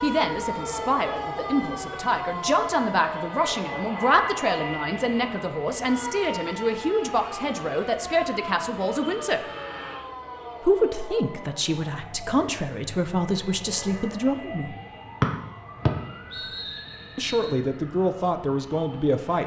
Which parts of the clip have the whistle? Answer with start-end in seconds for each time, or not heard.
15.2-17.6.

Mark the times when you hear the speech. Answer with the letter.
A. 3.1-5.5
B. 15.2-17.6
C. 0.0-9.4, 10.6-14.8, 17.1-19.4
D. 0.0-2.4
C.